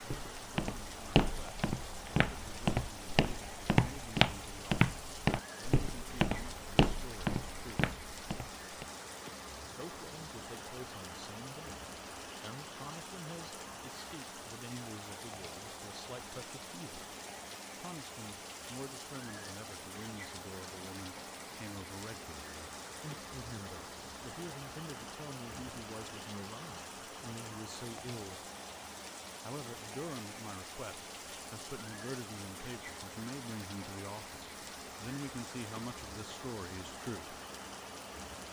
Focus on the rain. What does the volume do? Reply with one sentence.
The volume of the rain stays about the same.